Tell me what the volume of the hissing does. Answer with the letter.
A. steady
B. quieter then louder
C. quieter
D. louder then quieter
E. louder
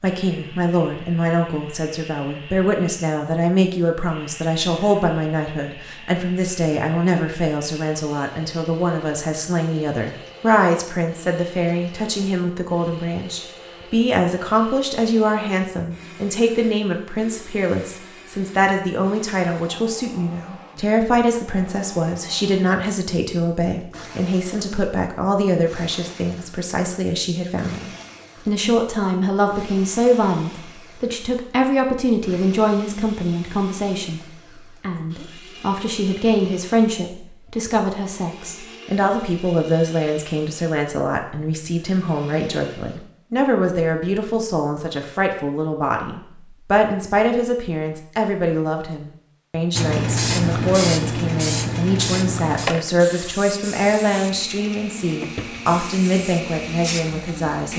C.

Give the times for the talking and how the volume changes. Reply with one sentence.
You can hear the talking from 0.0 to 57.7 s, at a steady volume.